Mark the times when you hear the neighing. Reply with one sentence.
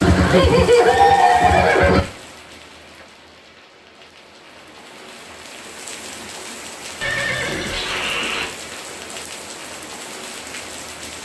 The neighing can be heard from 0.0 to 2.0 s and from 7.0 to 8.5 s.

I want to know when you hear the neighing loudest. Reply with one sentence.
The volume of the neighing peaks at 1 second.